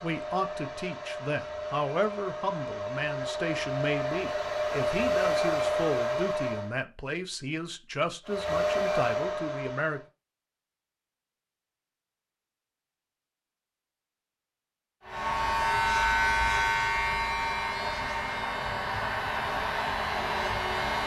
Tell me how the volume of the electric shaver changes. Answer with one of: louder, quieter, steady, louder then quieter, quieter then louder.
quieter.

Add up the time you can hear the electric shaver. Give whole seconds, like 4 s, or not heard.
6 s.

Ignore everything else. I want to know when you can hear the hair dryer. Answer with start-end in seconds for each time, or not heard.
0.0-6.8, 8.2-10.1, 15.0-21.0.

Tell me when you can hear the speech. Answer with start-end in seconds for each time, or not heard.
0.0-10.0.